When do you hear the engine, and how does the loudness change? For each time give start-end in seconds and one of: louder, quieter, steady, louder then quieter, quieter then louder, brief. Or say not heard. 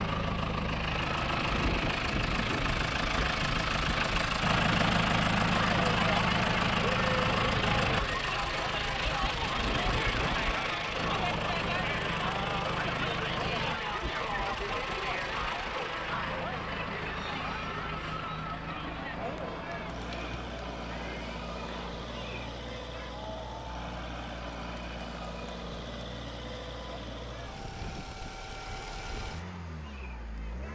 0.0-30.6 quieter.